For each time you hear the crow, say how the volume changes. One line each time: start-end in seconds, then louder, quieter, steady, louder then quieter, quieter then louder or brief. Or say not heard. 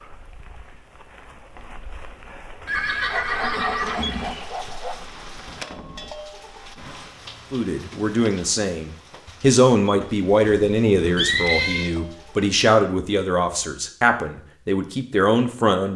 not heard.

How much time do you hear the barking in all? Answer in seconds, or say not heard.
2 s.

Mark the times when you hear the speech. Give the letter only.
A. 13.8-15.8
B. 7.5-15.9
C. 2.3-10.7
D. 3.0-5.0
B.